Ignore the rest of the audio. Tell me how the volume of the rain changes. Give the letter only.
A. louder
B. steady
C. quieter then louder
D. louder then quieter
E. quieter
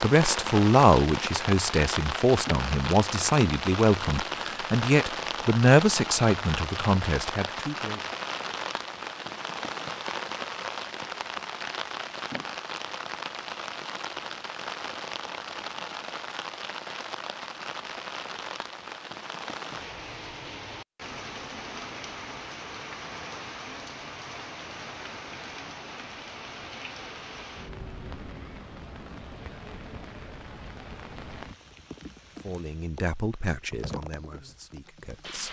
E.